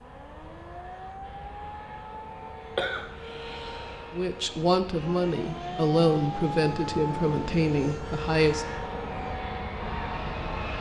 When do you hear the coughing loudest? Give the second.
3 s.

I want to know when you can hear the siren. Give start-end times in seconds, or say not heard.
0.0-10.7.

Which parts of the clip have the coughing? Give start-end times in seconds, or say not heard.
2.8-4.2.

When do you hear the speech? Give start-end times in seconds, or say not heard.
4.1-8.7.